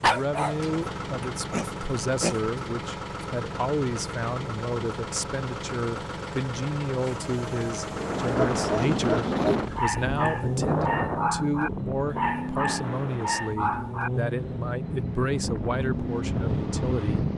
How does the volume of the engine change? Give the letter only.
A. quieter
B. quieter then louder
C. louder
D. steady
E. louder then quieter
D.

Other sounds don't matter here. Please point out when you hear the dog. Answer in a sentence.
The dog can be heard from 0.0 to 0.8 s, from 1.5 to 2.5 s and from 8.5 to 14.1 s.